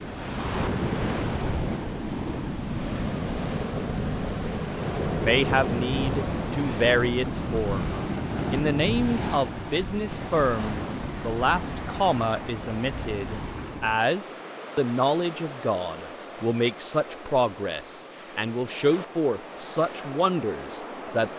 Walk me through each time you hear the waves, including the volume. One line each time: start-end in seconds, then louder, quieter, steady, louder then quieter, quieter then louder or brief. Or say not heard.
0.0-21.3 quieter.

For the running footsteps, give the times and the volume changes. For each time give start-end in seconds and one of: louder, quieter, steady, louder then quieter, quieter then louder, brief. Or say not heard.
not heard.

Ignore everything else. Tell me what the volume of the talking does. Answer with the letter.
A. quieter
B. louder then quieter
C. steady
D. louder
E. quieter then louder
C.